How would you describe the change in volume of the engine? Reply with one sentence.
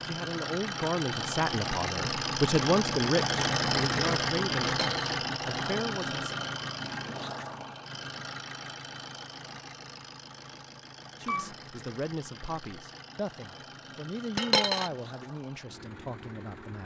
The volume of the engine goes down.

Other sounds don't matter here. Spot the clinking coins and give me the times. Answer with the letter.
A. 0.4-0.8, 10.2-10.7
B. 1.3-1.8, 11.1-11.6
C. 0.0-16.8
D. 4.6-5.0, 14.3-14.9
D.